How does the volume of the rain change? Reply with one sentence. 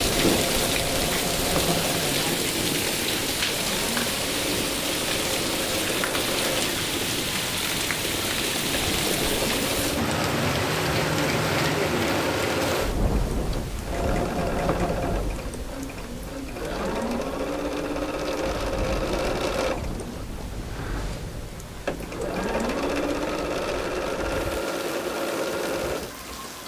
The volume of the rain goes down.